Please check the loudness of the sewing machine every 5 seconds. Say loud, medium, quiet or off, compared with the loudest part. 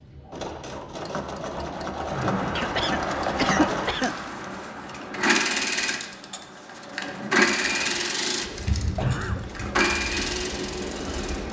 medium, loud, medium.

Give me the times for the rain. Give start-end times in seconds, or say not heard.
2.0-11.4.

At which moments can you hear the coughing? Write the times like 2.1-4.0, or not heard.
2.5-4.2, 8.8-9.4.